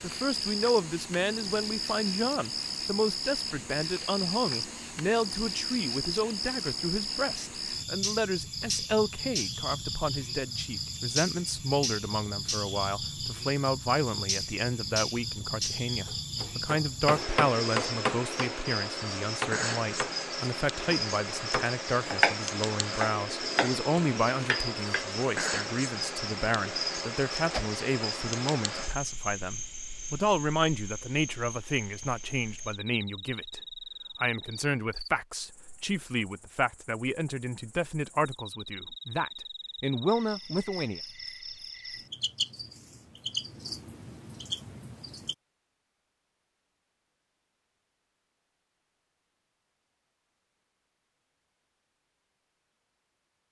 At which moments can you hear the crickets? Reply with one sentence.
You can hear the crickets from 0.0 to 45.4 s.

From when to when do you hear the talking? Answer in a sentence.
You can hear the talking from 0.0 to 33.6 s and from 34.2 to 41.0 s.